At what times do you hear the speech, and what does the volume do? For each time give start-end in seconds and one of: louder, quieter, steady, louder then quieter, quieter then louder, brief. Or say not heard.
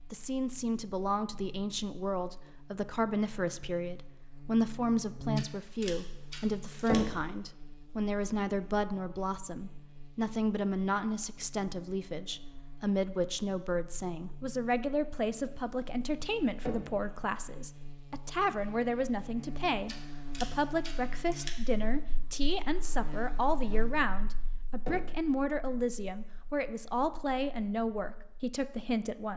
0.1-29.3 steady.